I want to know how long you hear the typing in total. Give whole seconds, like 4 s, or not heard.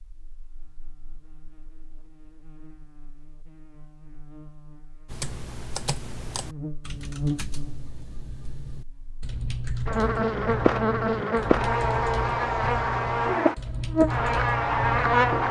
10 s.